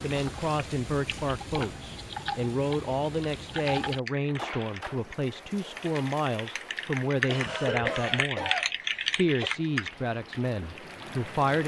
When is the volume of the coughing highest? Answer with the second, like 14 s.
8 s.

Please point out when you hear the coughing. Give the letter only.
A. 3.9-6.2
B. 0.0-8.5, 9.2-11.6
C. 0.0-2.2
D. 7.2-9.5
D.